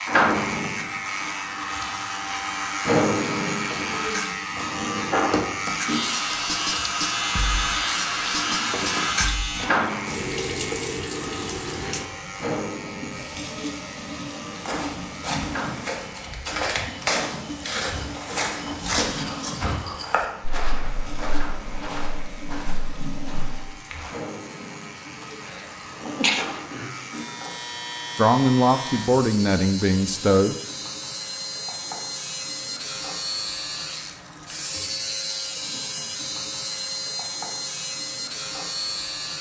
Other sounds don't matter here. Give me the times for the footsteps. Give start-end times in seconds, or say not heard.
14.6-24.1.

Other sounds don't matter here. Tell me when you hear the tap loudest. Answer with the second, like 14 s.
9 s.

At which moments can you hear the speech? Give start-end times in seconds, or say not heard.
28.1-30.6.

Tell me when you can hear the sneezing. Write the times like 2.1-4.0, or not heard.
25.4-26.9.